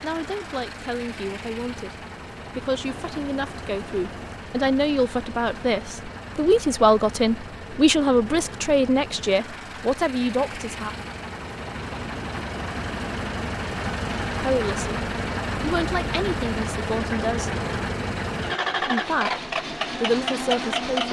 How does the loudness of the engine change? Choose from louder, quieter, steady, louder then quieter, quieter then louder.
louder.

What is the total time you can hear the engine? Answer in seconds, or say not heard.
21 s.